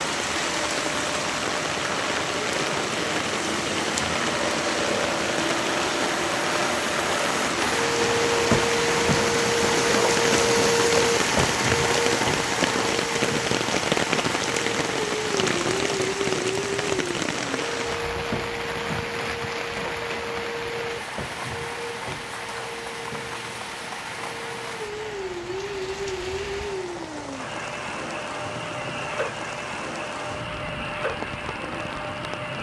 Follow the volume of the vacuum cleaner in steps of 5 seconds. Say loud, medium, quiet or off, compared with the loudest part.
medium, loud, loud, medium, medium, medium, medium.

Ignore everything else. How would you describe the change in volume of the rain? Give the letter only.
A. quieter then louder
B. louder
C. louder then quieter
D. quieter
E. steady
D.